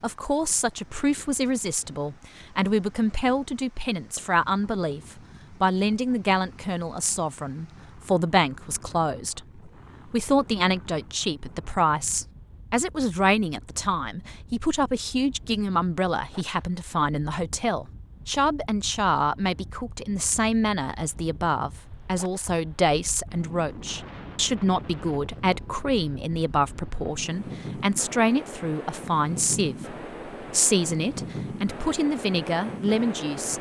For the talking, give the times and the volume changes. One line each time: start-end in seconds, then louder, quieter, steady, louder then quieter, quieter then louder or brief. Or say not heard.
0.0-33.5 steady.